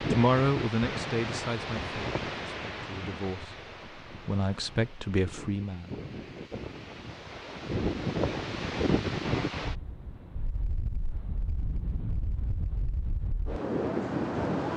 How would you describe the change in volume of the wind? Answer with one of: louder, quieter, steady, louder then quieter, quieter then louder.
quieter then louder.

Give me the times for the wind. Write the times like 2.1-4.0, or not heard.
0.0-14.7.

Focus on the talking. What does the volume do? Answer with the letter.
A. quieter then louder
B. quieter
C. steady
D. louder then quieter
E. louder
A.